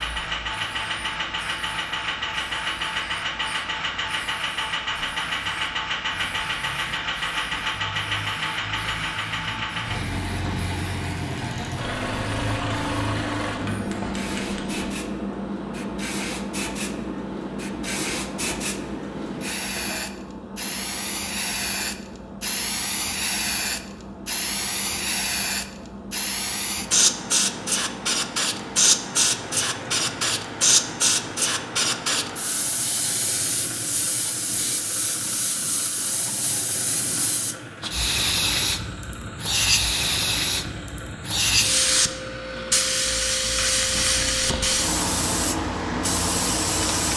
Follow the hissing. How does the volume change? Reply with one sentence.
The loudness of the hissing goes up.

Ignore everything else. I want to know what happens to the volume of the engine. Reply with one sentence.
The volume of the engine goes down.